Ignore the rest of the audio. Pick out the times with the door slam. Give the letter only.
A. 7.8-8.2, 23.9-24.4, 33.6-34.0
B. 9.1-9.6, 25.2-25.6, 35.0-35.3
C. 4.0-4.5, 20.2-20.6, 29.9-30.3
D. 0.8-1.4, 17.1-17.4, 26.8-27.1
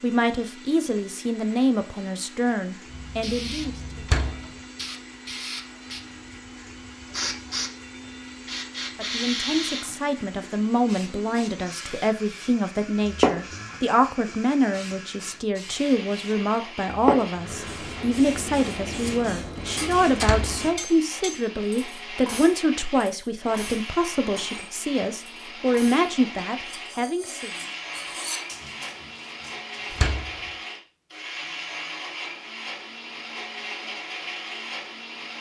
C.